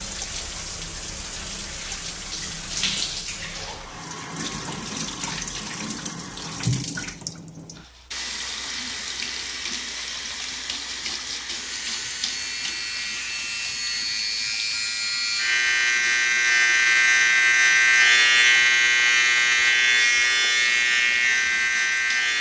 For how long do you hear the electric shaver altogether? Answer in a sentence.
You can hear the electric shaver for 11 seconds altogether.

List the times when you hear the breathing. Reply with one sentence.
The breathing can't be heard in this clip.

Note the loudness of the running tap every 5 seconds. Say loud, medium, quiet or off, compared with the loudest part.
loud, loud, loud, medium, medium.